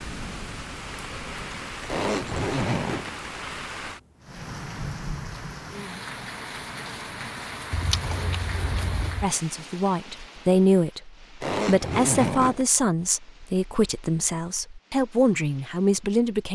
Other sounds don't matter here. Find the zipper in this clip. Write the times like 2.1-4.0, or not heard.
1.9-3.1, 8.0-9.2, 11.4-12.7.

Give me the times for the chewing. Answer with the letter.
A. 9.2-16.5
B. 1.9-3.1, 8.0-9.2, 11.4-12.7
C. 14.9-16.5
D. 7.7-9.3
D.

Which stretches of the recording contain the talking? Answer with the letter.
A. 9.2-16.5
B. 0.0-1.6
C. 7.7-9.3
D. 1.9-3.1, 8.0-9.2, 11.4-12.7
A.